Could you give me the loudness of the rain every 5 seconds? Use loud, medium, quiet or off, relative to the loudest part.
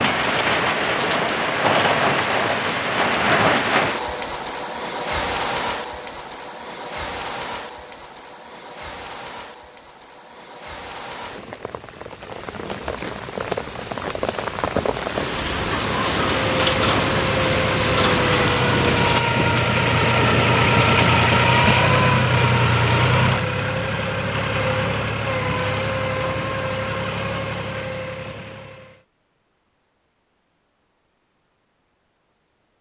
loud, medium, medium, loud, off, off, off.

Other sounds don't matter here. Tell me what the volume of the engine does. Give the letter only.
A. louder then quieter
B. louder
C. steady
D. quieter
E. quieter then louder
A.